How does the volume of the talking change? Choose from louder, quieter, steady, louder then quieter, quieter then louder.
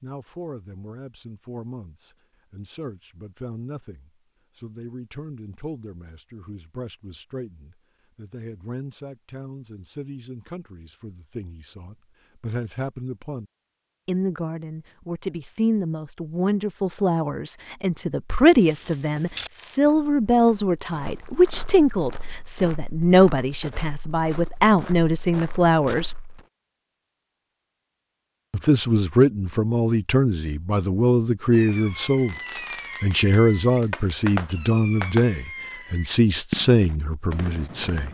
louder.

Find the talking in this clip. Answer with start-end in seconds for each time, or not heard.
0.0-13.4, 14.1-26.1, 28.5-32.4, 33.0-38.0.